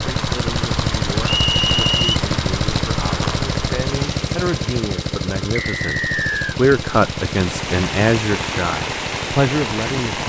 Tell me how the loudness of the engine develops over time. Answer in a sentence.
The volume of the engine goes down.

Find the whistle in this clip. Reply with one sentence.
You can hear the whistle from 1.2 to 2.0 s and from 5.5 to 6.5 s.